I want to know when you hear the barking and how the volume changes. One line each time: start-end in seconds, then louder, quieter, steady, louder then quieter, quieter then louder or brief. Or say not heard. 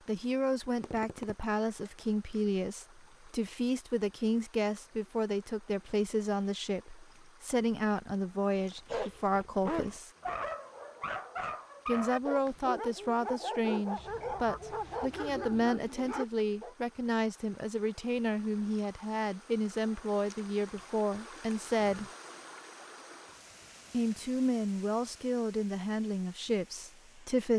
8.7-16.8 steady.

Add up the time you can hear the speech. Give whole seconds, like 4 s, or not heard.
24 s.